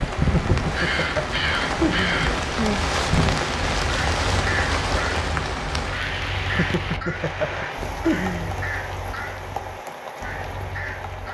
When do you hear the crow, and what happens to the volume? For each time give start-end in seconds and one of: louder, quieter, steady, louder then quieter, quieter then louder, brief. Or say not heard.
0.0-11.2 quieter.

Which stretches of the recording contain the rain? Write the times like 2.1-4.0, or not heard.
0.0-11.2.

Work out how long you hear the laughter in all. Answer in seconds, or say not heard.
5 s.